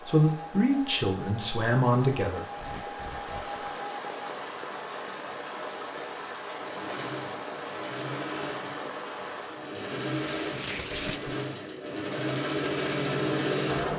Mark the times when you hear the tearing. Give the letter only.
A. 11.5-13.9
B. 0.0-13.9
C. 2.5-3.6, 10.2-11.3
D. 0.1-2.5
C.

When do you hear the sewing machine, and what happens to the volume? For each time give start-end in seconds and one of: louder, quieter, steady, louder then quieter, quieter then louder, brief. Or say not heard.
0.0-13.9 louder.